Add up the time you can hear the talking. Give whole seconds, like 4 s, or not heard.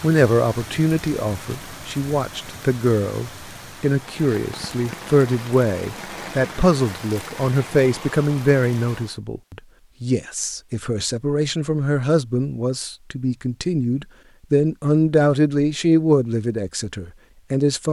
18 s.